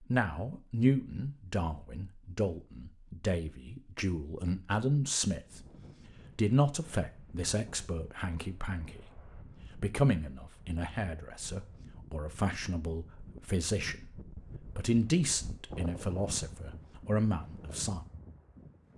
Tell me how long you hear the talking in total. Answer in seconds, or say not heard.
18 s.